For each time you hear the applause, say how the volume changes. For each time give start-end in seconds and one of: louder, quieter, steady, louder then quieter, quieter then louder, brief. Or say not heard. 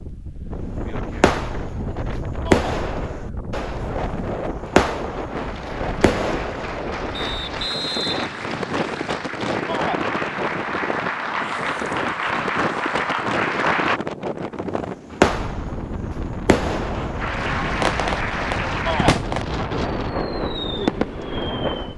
5.5-14.0 louder
17.2-19.1 brief.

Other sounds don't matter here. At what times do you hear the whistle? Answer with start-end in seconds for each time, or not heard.
7.2-9.2.